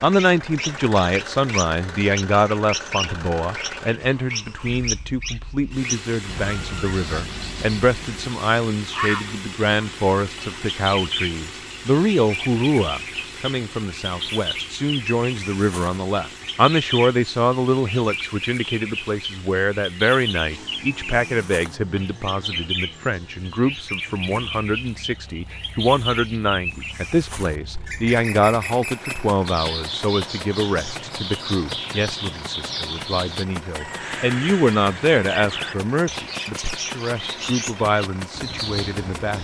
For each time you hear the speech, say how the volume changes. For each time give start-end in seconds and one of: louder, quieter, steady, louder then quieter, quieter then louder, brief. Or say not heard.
0.0-39.3 steady.